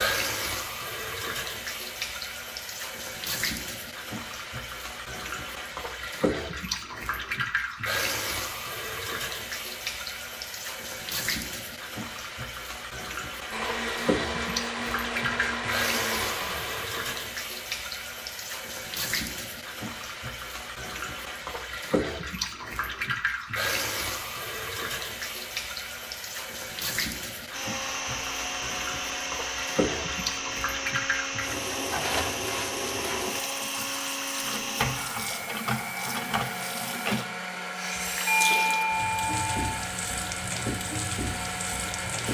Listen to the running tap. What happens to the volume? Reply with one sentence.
The volume of the running tap stays about the same.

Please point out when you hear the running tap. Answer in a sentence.
The running tap can be heard from 0.0 to 42.2 s.